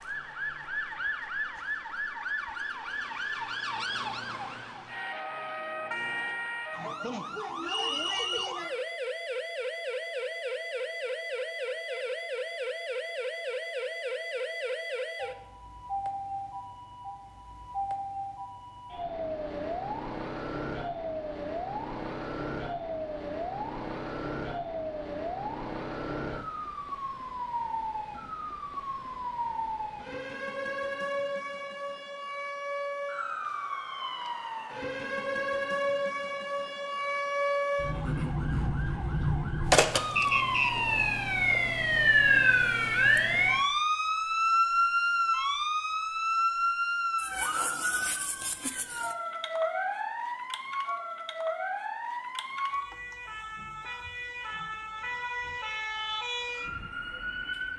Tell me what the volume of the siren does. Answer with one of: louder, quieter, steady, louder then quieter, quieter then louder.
louder then quieter.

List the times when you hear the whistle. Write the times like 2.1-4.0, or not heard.
7.6-8.5, 40.1-40.8.